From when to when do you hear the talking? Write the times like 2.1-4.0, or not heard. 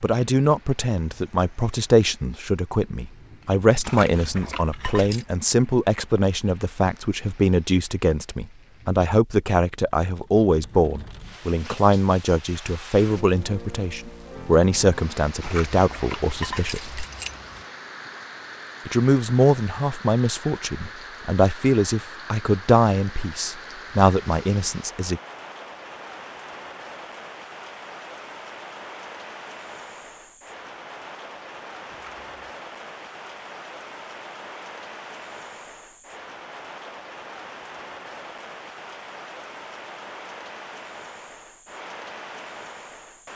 0.0-17.1, 18.9-25.2.